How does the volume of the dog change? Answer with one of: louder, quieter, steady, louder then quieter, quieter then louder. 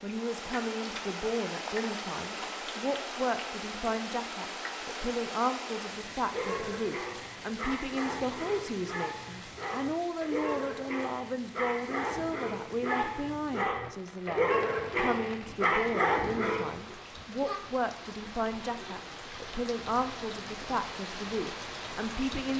louder.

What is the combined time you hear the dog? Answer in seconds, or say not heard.
11 s.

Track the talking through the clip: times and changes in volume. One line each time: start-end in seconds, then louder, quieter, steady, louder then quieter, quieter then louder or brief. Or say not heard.
0.0-22.5 steady.